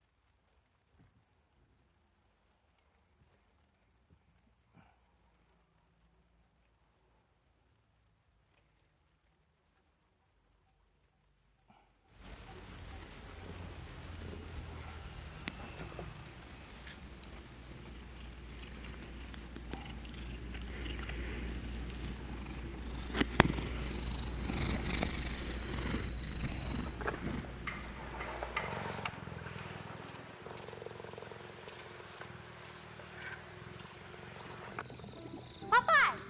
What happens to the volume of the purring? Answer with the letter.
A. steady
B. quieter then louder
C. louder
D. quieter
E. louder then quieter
E.